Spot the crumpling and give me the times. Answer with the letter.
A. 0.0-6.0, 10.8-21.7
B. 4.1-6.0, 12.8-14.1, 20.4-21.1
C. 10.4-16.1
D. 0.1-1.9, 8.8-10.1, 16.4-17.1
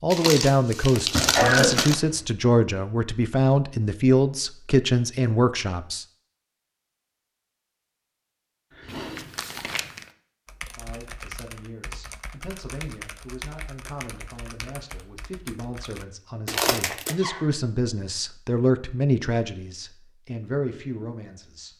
D.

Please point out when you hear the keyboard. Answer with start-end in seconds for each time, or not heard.
10.4-16.1.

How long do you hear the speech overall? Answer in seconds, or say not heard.
17 s.